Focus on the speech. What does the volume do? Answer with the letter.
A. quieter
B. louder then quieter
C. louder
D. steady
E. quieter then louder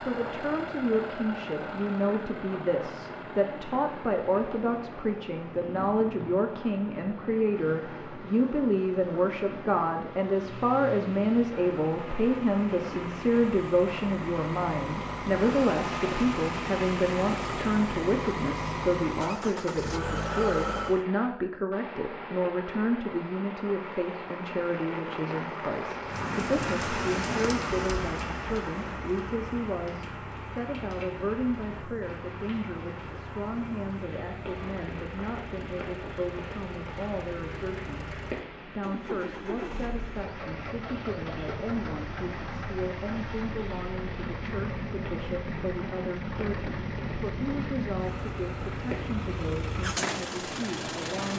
A.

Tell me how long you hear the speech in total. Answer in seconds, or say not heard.
51 s.